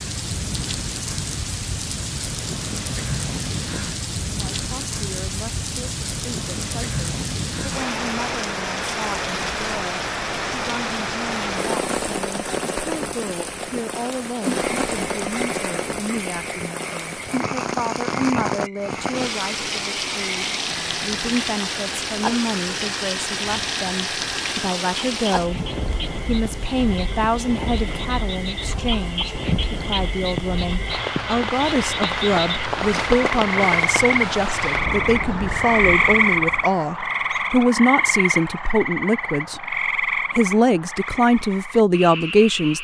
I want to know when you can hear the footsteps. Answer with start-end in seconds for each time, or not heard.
not heard.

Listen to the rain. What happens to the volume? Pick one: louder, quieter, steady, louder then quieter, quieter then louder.
steady.